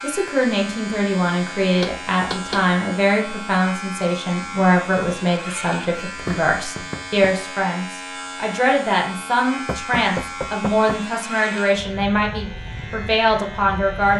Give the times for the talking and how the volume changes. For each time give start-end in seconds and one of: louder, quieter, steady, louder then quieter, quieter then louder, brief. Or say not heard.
0.0-14.1 steady.